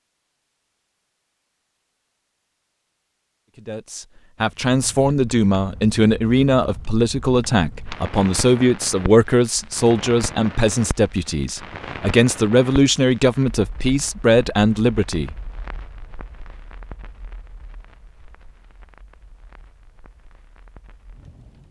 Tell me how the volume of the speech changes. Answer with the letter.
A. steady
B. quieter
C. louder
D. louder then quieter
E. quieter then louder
A.